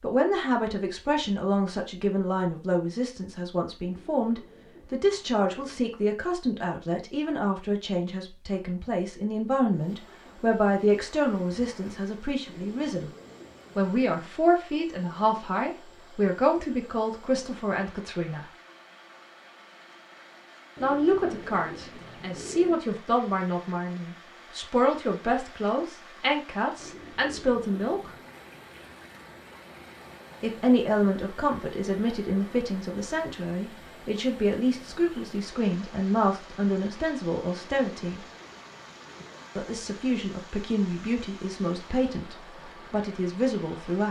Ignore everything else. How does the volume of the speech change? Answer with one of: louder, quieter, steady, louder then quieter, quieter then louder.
steady.